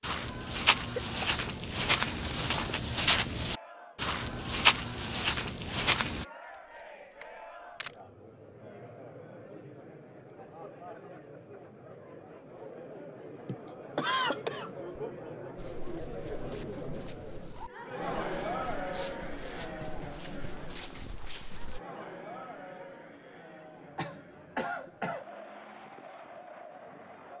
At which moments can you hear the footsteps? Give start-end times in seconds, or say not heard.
0.0-6.2, 15.6-21.8.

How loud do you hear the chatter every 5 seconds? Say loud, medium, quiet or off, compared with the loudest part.
medium, medium, medium, loud, medium, medium.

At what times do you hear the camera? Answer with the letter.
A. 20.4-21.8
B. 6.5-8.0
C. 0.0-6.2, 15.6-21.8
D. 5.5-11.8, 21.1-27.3
B.